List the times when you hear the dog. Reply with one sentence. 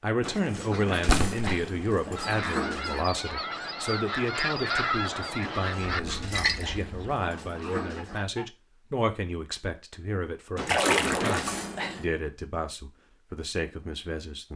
The dog can be heard from 0.2 to 3.0 s, from 5.4 to 8.2 s and from 10.6 to 12.1 s.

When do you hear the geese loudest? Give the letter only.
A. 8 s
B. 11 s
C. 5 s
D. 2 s
C.